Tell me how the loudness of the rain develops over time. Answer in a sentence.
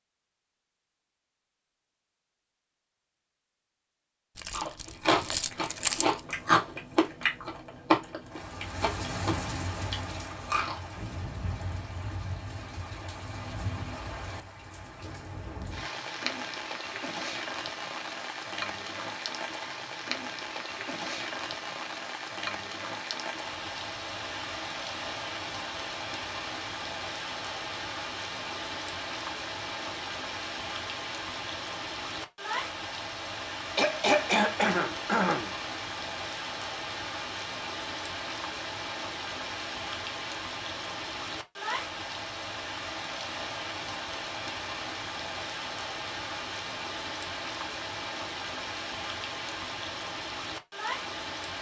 The volume of the rain stays about the same.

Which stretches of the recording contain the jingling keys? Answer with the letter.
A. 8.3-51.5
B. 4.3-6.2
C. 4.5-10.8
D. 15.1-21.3
B.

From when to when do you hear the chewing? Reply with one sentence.
You can hear the chewing from 4.5 to 10.8 s.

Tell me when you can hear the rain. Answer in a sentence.
The rain can be heard from 8.3 to 51.5 s.